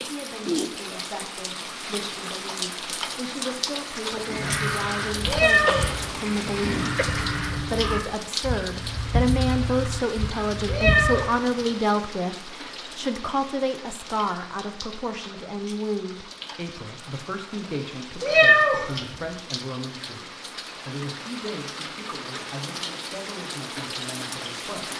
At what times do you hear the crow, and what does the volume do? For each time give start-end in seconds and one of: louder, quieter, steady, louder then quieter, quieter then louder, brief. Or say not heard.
4.1-11.4 steady.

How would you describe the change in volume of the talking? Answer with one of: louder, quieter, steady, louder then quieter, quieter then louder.
louder then quieter.